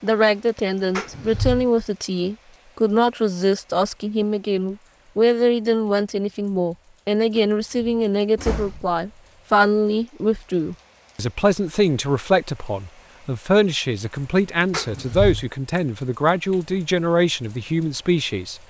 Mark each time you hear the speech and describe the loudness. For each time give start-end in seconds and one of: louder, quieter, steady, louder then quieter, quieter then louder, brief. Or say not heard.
0.0-18.6 steady.